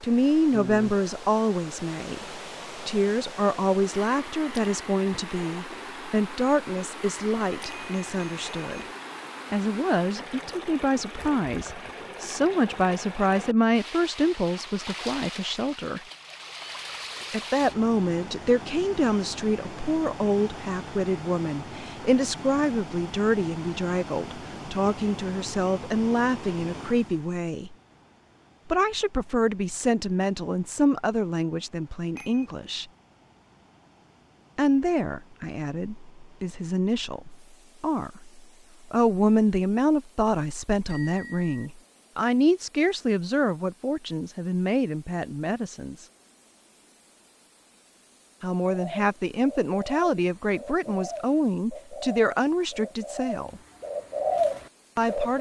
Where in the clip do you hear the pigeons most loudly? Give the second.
54 s.